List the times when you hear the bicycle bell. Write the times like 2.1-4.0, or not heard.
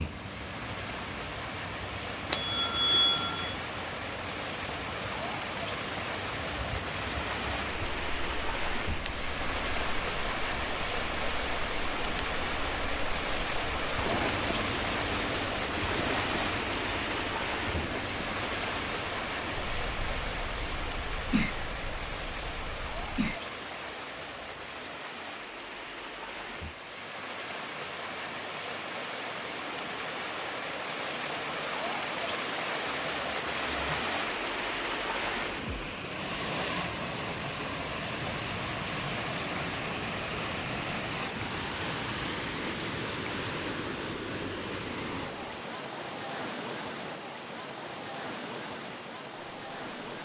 2.3-3.5.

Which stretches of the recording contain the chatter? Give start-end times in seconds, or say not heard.
not heard.